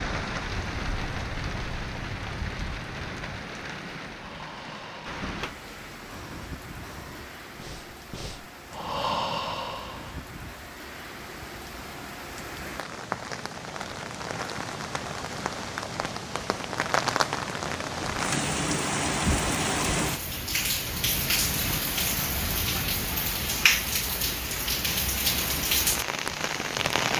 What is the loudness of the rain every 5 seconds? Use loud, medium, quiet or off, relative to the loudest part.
medium, quiet, medium, loud, loud, loud.